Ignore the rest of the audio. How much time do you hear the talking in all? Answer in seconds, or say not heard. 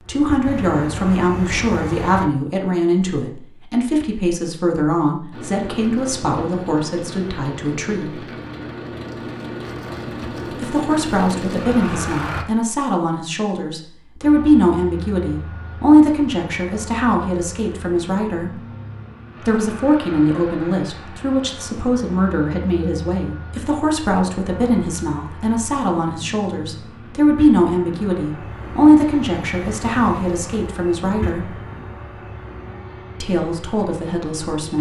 30 s.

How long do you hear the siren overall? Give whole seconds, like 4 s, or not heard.
not heard.